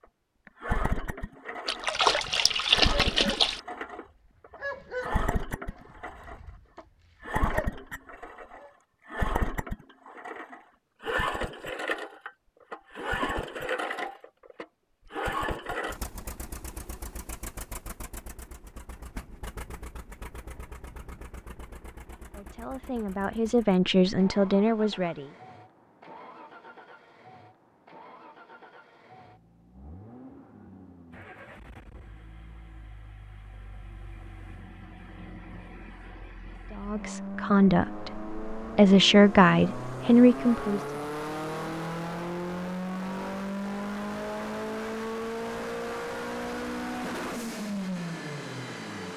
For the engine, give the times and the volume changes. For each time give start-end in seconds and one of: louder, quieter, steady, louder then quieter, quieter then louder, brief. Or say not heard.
0.5-49.1 quieter then louder.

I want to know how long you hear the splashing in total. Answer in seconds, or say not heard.
2 s.